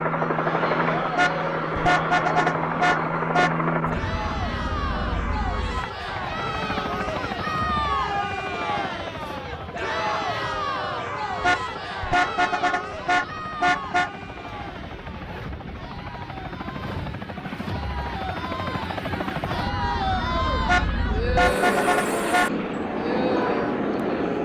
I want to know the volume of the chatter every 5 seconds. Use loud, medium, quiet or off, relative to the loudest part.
loud, loud, loud, medium, loud.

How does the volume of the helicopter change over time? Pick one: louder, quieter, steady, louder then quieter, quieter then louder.
quieter then louder.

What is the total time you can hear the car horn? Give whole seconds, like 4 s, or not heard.
7 s.